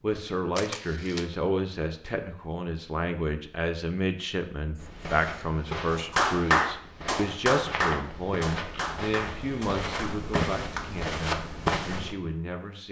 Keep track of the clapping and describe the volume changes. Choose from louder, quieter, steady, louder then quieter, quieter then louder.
quieter.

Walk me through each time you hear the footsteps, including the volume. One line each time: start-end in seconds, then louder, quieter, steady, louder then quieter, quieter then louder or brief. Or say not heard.
4.8-12.2 louder.